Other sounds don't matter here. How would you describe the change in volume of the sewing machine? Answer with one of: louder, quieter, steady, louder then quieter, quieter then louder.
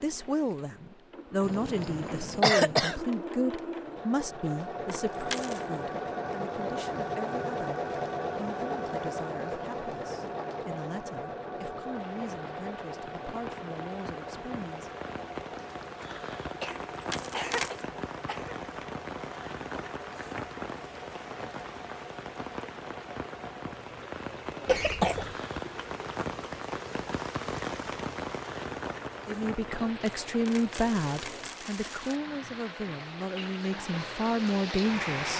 quieter.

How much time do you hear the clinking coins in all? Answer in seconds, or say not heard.
4 s.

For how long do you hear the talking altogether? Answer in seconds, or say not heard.
21 s.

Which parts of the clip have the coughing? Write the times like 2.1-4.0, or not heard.
1.4-3.0, 16.6-18.6, 24.6-25.4.